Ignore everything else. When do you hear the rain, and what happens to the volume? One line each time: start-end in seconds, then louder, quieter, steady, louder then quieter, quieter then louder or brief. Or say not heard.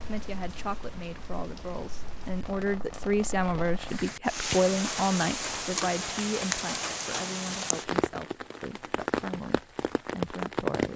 0.0-10.9 louder.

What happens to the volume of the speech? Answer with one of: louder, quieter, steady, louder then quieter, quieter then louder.
louder then quieter.